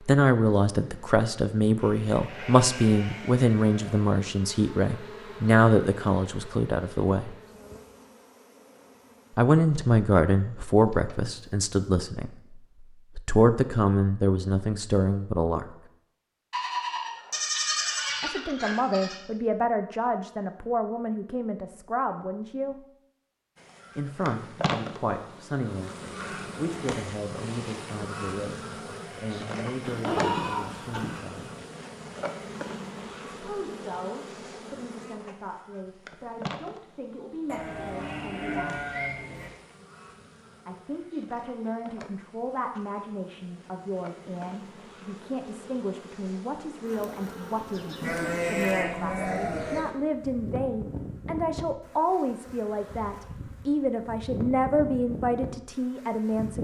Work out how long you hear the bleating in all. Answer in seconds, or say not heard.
10 s.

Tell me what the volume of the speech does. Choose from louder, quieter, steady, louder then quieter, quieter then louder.
quieter then louder.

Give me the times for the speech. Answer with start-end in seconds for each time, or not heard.
0.1-7.3, 9.3-15.7, 18.2-22.8, 23.9-31.6, 33.3-38.8, 40.6-56.5.